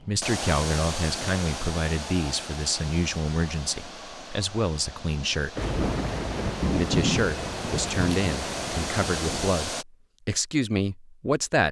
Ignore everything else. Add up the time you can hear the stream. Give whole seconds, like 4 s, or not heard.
10 s.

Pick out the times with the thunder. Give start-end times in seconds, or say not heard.
5.5-9.5.